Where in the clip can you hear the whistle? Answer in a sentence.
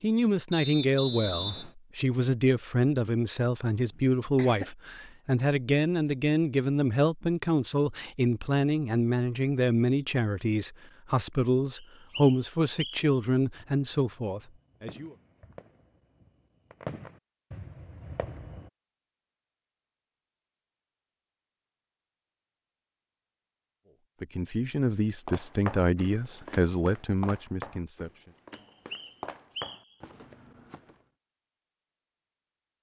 The whistle can be heard from 0.5 to 1.7 s, from 11.8 to 13.1 s and from 28.5 to 29.9 s.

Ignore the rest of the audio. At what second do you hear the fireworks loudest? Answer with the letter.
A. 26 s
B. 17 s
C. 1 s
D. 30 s
B.